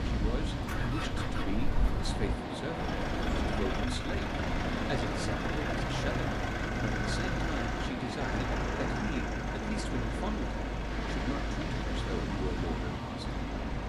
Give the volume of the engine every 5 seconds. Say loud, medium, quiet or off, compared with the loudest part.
loud, loud, medium.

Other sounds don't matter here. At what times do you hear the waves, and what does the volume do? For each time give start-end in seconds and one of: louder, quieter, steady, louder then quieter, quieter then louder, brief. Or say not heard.
0.0-13.8 steady.